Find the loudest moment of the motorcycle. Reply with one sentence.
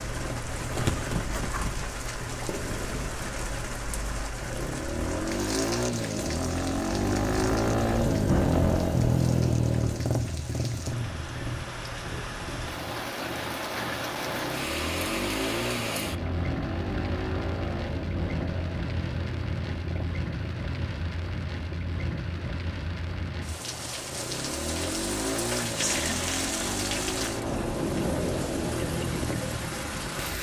The volume of the motorcycle peaks at 9 seconds.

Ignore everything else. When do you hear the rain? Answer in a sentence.
You can hear the rain from 0.0 to 30.3 s.